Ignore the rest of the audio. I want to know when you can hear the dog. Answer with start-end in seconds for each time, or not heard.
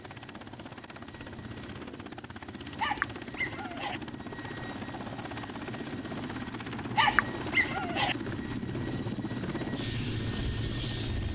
2.8-4.0, 7.0-8.2.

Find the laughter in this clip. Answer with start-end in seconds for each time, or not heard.
not heard.